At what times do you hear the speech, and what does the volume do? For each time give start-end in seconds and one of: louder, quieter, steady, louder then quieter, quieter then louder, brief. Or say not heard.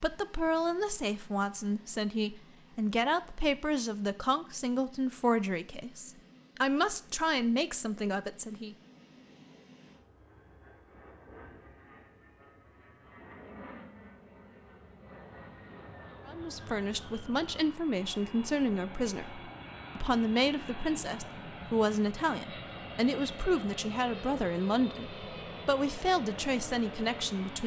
0.0-8.8 steady
16.2-27.6 steady.